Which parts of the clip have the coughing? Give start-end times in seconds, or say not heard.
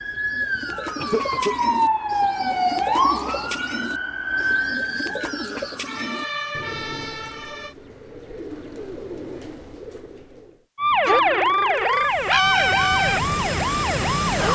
0.6-1.6.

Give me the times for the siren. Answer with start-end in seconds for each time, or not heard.
0.0-7.8, 10.8-14.5.